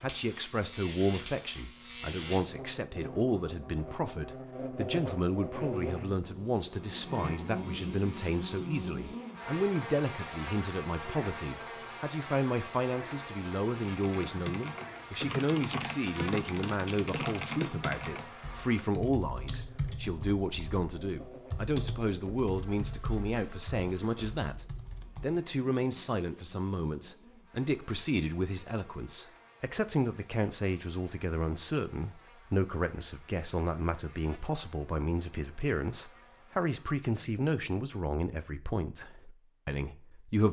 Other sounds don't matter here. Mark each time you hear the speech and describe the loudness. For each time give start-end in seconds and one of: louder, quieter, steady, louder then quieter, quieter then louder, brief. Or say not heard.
0.0-40.4 steady.